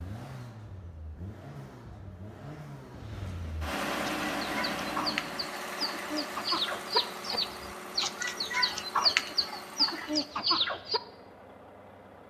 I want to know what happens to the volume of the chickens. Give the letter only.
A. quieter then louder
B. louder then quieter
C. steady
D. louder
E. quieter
D.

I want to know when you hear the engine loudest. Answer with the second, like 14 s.
4 s.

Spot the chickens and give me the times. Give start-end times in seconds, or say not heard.
4.0-11.0.